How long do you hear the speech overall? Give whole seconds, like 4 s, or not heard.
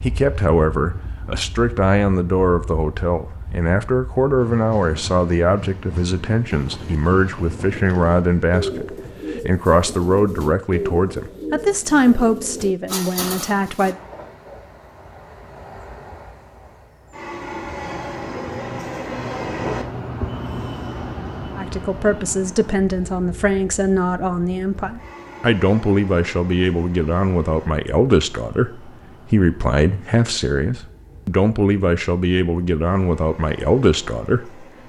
27 s.